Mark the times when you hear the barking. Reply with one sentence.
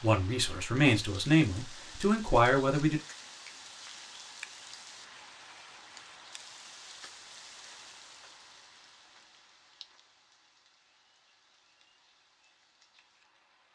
You can't hear the barking here.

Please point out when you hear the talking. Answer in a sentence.
You can hear the talking from 0.0 to 3.0 s.